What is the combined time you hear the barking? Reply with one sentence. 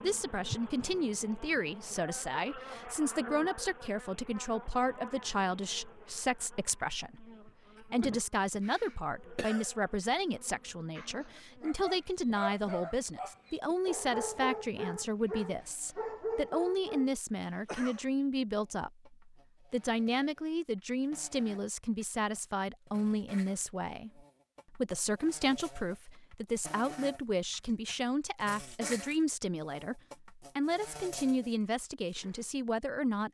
The barking can be heard for 6 seconds in total.